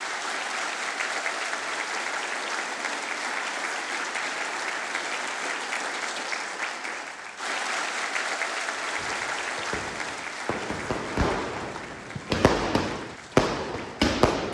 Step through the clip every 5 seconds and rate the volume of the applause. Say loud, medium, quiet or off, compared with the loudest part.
loud, loud, medium.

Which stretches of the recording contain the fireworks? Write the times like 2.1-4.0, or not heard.
8.9-14.4.